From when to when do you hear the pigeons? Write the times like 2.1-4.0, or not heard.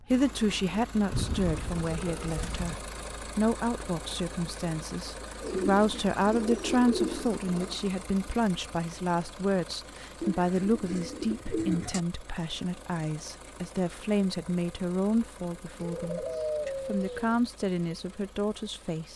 1.1-2.8, 5.4-7.8, 10.2-12.0, 15.8-17.4.